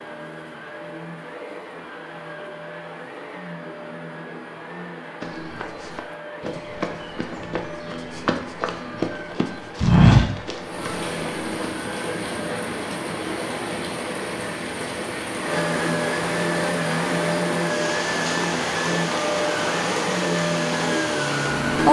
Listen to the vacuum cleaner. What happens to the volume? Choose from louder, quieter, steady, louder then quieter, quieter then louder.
louder.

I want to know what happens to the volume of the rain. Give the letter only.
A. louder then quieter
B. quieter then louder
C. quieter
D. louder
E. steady
E.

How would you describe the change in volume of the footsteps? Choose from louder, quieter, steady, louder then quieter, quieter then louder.
louder.